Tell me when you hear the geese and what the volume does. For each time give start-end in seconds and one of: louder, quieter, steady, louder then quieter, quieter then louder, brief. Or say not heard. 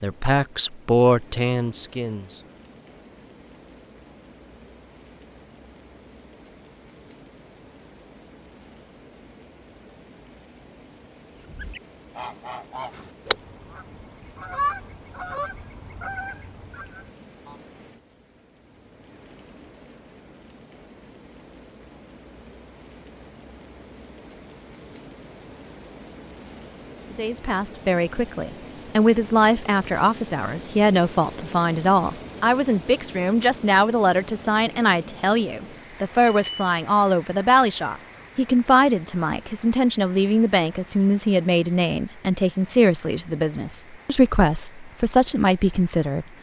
11.3-17.6 louder then quieter.